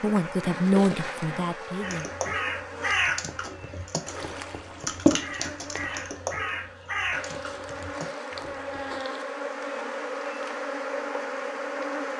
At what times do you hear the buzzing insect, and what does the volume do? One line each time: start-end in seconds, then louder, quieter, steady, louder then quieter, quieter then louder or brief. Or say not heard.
0.0-12.1 quieter then louder.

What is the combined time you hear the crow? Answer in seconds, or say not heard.
7 s.